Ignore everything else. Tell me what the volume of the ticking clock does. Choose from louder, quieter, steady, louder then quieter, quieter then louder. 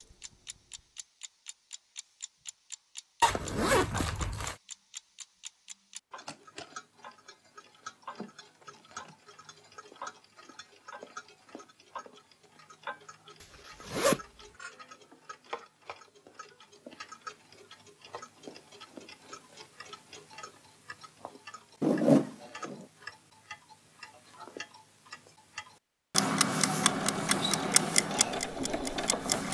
louder.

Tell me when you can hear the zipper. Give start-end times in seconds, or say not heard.
3.2-4.5, 13.4-14.2, 21.8-22.9.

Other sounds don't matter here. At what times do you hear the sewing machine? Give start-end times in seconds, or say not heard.
26.8-29.4.